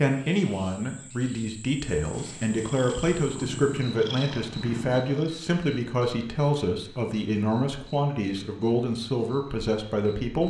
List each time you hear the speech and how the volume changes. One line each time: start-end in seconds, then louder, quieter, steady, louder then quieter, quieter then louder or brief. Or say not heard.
0.0-10.4 steady.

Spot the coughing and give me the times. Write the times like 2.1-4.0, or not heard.
not heard.